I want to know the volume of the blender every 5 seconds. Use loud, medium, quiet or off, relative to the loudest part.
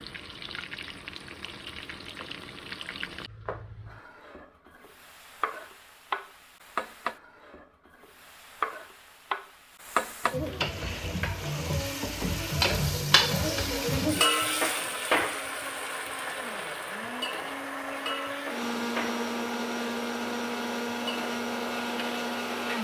off, off, medium, loud, loud.